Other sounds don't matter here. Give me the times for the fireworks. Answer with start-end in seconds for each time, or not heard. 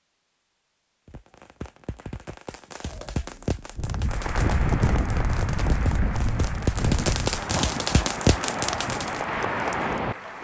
1.1-9.2.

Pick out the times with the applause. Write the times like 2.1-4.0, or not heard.
4.0-10.4.